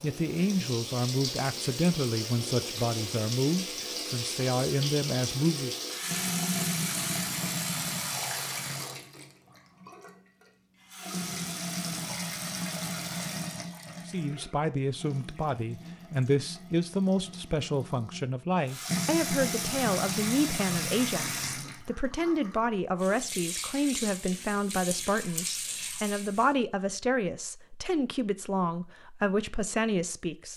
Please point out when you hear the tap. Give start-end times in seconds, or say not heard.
0.0-26.6.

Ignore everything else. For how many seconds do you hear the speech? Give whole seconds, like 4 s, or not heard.
22 s.